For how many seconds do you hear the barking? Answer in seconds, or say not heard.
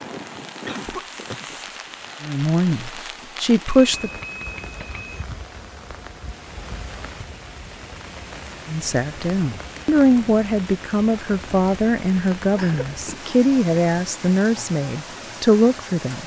not heard.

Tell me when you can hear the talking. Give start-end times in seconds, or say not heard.
2.2-4.1, 8.7-16.2.